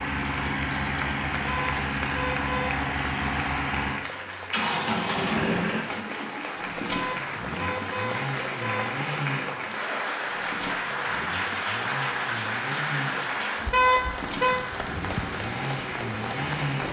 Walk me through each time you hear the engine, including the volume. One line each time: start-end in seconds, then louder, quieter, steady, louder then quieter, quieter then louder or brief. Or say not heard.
0.0-16.8 quieter.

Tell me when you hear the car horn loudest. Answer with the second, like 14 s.
14 s.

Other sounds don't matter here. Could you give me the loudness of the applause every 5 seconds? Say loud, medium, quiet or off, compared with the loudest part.
medium, loud, loud, loud.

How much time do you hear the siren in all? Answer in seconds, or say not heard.
not heard.